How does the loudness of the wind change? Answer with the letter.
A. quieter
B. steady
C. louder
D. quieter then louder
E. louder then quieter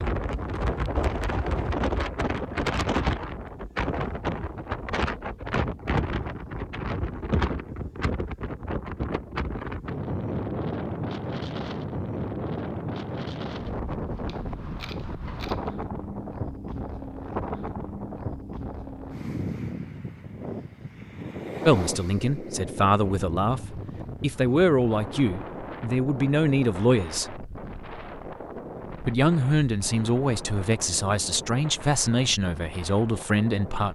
A.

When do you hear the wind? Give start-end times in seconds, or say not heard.
0.0-33.9.